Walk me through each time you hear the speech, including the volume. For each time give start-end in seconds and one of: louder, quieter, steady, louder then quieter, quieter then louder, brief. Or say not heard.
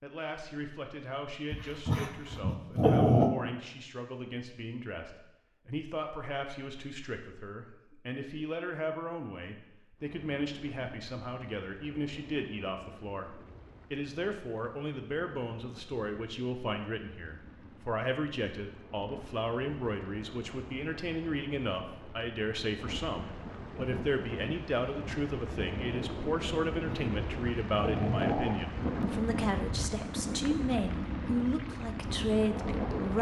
0.0-33.1 louder.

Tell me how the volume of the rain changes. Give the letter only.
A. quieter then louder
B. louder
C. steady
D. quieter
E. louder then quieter
B.